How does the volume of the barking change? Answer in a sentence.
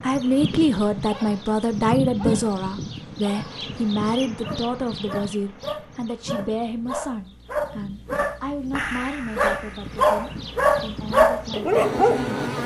The volume of the barking goes up.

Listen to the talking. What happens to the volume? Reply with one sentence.
The volume of the talking goes down.